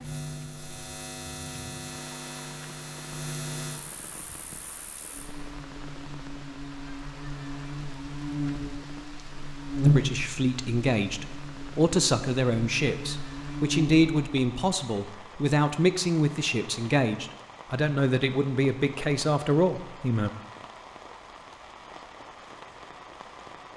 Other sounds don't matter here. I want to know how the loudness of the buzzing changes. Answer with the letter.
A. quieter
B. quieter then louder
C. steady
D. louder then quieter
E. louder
D.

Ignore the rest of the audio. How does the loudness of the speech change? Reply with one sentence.
The volume of the speech stays about the same.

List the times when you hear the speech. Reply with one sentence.
The speech can be heard from 9.8 to 20.3 s.